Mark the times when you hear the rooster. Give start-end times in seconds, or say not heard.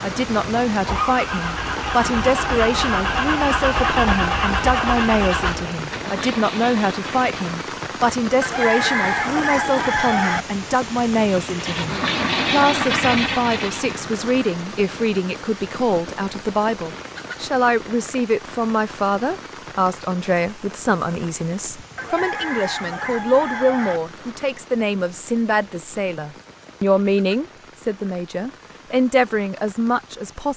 8.4-10.4, 21.9-24.0.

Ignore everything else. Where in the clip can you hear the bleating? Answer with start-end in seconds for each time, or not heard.
not heard.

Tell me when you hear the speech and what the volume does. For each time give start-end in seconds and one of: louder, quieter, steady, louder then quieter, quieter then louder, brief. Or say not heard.
0.0-30.5 steady.